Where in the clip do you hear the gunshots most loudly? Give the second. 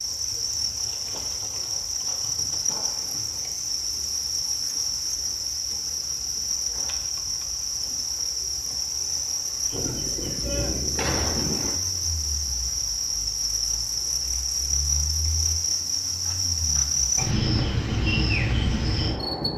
11 s.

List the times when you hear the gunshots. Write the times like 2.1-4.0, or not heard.
9.7-11.8.